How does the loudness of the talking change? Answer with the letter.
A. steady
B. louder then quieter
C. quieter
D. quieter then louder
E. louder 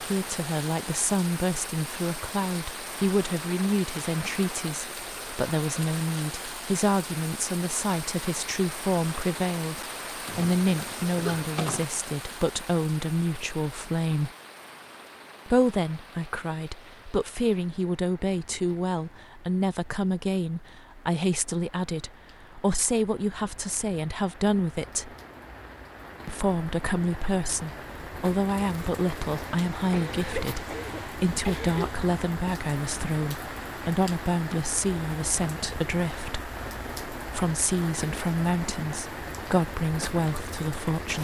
A.